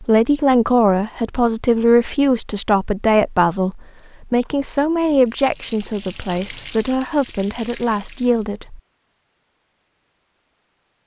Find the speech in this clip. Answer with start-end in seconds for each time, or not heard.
0.0-8.8.